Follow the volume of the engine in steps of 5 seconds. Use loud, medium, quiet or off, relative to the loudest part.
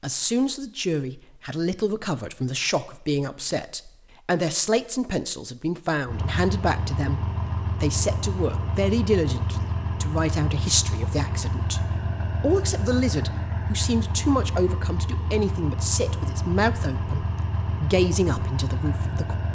off, loud, loud, loud.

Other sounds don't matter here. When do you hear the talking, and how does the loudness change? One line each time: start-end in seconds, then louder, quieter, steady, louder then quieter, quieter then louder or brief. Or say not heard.
0.0-19.4 steady.